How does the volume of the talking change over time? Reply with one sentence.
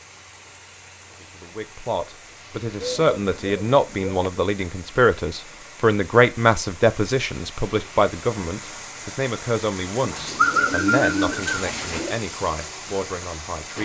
The volume of the talking goes down.